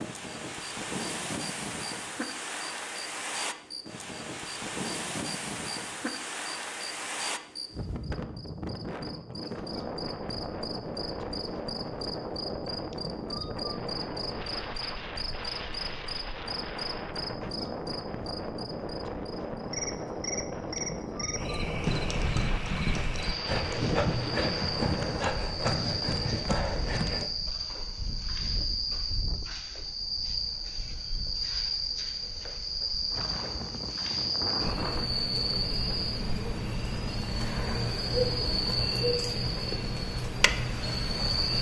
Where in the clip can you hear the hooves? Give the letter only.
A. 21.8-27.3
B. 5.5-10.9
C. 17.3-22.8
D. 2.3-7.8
A.